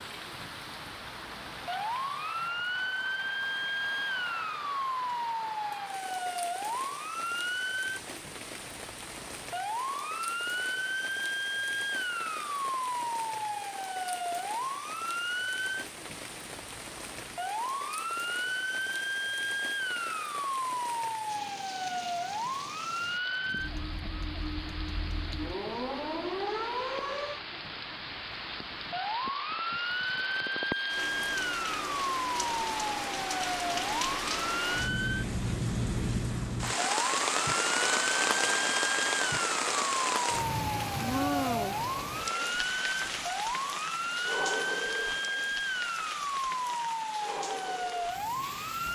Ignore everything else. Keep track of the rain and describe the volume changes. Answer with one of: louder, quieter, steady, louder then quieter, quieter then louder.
louder.